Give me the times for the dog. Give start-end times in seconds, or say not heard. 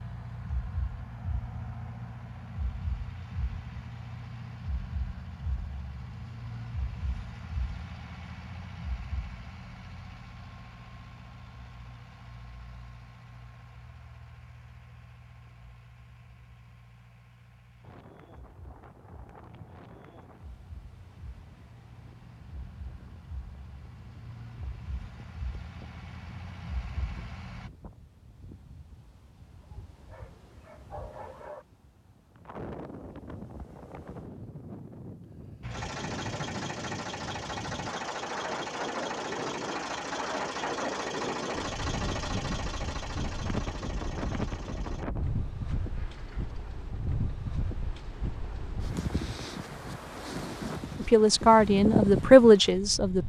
29.6-31.6.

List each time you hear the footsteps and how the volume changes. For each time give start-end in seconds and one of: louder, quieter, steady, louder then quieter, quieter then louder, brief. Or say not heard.
not heard.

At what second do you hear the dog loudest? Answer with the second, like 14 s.
31 s.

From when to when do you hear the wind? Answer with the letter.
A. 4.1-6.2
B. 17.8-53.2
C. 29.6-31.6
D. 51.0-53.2
B.